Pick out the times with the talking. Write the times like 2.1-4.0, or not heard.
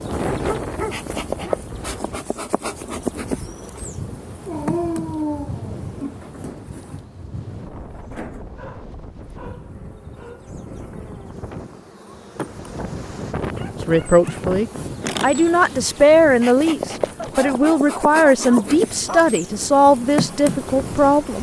13.8-21.3.